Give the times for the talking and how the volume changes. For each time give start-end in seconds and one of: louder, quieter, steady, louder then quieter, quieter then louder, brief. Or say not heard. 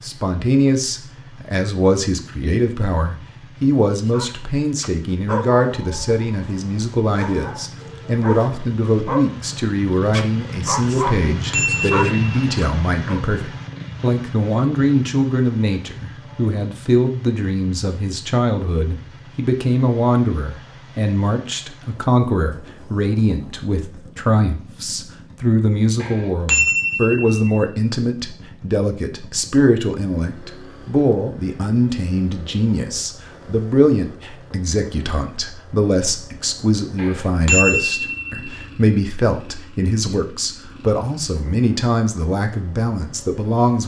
0.0-43.8 steady.